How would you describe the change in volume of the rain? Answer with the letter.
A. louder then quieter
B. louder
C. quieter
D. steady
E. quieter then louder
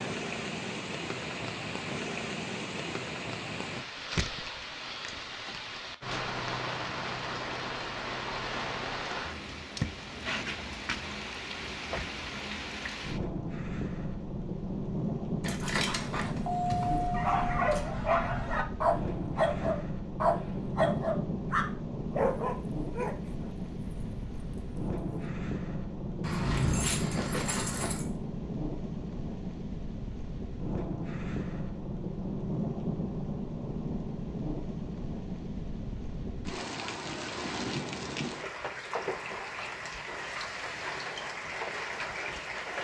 D.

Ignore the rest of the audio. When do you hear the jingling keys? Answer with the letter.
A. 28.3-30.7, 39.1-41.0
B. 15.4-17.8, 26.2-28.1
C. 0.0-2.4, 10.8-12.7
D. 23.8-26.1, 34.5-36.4
B.